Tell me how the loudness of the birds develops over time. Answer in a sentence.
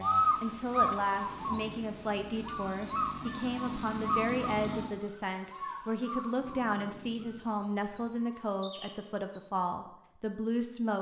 The loudness of the birds goes down.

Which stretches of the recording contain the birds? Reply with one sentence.
You can hear the birds from 0.0 to 9.4 s.